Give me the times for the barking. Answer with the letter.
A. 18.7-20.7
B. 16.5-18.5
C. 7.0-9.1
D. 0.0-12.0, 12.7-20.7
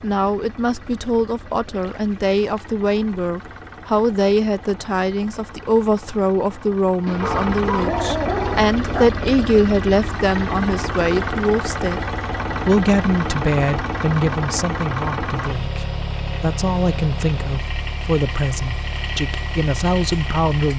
C.